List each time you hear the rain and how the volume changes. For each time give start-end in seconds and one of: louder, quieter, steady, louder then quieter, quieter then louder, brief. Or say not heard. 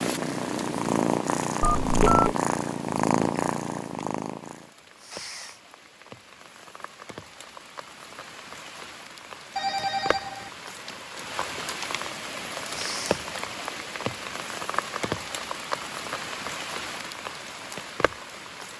0.0-18.7 louder.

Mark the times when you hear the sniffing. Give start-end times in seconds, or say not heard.
5.0-5.6, 12.6-13.2.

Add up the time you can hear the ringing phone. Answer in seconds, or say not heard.
2 s.